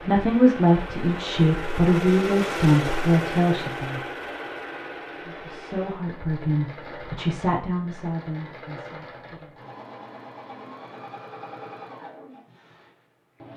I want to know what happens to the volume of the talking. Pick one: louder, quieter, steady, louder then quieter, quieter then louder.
quieter.